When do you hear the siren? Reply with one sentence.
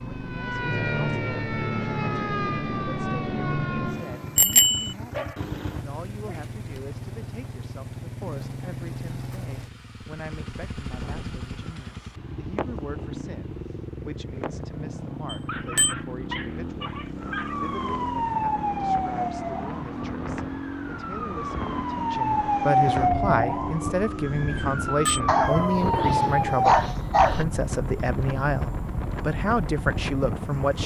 The siren can be heard from 0.0 to 4.5 s and from 17.3 to 26.7 s.